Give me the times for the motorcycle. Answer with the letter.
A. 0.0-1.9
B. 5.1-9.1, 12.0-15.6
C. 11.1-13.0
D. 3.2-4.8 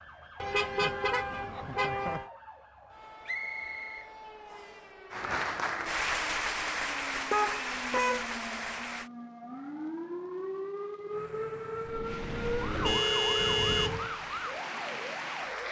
C.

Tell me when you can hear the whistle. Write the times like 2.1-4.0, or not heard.
3.2-4.8.